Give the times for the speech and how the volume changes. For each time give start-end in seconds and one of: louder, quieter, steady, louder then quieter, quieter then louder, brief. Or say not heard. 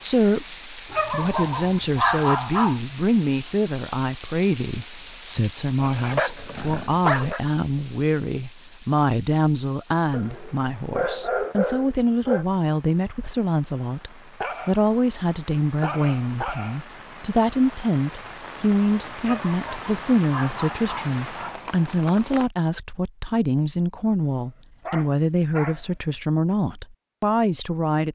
0.0-28.0 steady.